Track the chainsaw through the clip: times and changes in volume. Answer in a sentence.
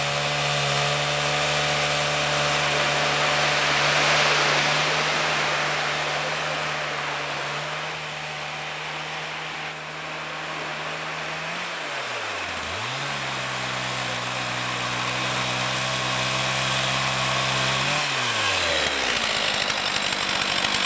The chainsaw can be heard from 0.0 to 20.8 s, getting quieter then louder.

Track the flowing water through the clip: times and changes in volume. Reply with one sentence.
You can hear the flowing water from 0.0 to 20.8 s, getting quieter.